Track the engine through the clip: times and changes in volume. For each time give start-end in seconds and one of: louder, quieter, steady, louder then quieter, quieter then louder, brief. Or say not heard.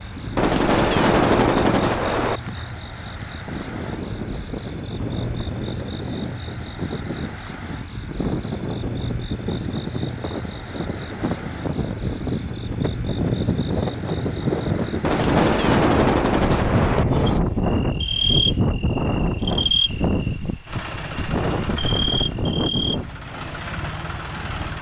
20.6-24.7 quieter then louder.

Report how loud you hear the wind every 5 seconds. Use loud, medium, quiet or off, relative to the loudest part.
medium, medium, loud, loud, loud.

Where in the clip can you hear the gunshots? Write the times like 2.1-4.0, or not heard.
0.3-2.4, 15.0-17.1.